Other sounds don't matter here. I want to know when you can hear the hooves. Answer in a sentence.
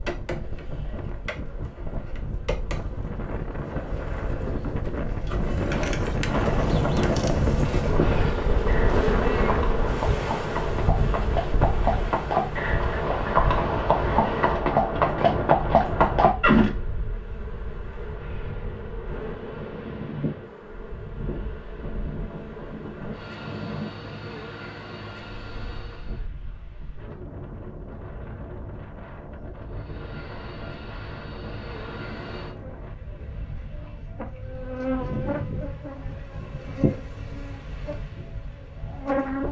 The hooves can be heard from 5.7 to 16.7 s.